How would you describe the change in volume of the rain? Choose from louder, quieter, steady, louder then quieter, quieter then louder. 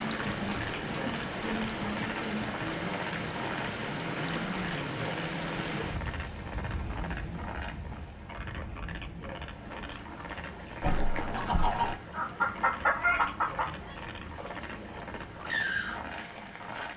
quieter.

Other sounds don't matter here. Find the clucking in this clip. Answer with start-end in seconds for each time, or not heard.
10.8-16.4.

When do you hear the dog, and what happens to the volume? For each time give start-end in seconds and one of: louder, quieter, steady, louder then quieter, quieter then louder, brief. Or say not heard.
not heard.